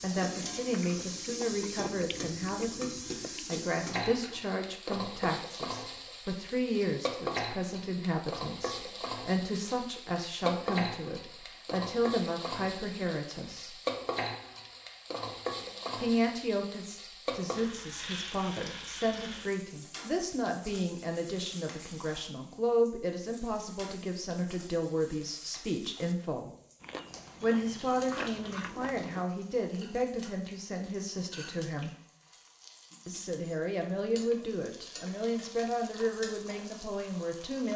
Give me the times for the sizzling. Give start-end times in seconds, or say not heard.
0.0-37.7.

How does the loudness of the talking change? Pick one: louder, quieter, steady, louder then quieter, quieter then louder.
steady.